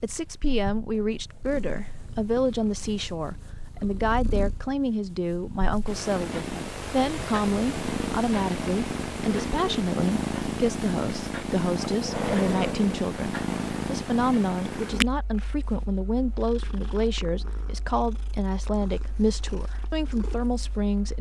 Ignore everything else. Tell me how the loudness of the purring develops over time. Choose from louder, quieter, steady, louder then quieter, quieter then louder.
louder then quieter.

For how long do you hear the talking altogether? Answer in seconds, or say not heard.
21 s.